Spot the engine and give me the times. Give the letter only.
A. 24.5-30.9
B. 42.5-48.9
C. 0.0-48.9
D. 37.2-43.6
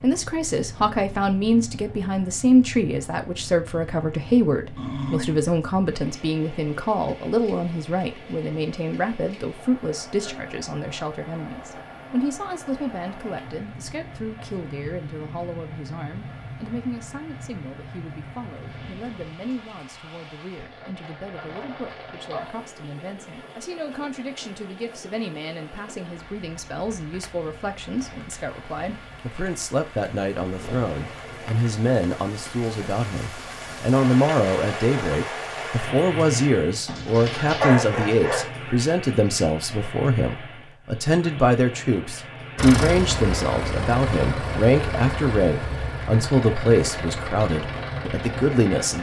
B.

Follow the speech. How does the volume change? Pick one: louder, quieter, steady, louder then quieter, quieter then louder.
quieter then louder.